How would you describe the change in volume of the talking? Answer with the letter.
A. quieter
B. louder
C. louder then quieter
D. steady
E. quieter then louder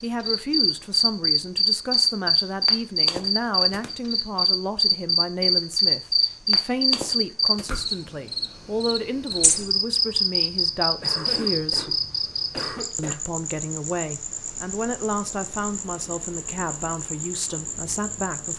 D.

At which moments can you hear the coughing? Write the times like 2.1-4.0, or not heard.
11.0-13.2.